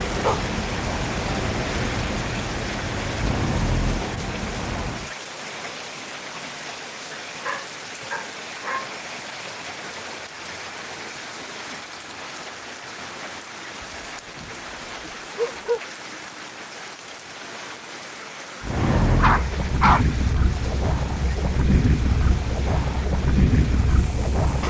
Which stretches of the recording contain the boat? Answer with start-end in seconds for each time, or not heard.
0.0-5.1, 18.6-24.6.